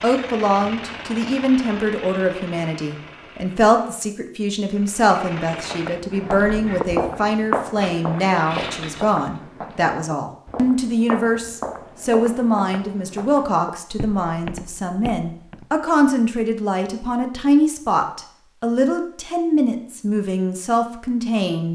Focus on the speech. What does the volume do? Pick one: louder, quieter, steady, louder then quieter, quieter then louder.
steady.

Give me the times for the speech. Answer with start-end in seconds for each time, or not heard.
0.0-21.7.